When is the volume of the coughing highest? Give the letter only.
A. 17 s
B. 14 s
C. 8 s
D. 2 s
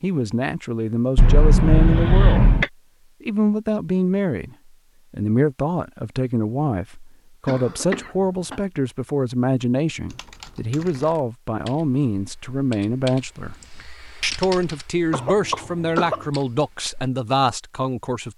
D.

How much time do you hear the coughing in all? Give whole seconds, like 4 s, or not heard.
4 s.